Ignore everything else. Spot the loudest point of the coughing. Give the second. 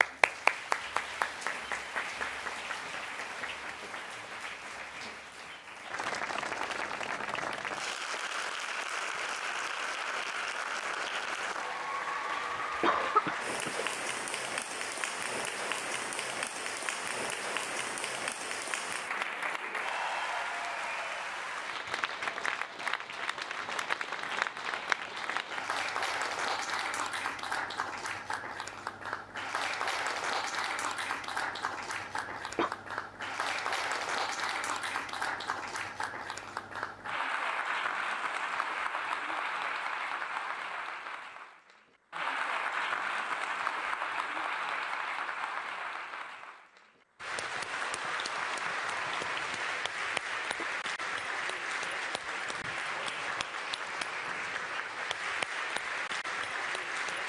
13 s.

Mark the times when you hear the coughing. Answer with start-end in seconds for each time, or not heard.
12.3-13.9, 32.0-32.7, 50.1-50.7.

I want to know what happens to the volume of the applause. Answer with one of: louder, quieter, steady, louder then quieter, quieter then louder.
steady.